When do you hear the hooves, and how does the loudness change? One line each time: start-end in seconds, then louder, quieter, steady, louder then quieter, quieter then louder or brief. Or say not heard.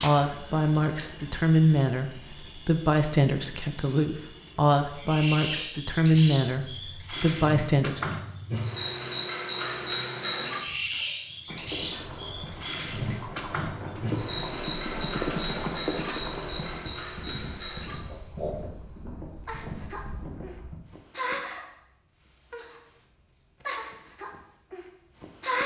11.4-20.8 louder then quieter.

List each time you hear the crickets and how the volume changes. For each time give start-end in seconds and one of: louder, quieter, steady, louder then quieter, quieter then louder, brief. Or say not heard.
0.0-25.6 quieter.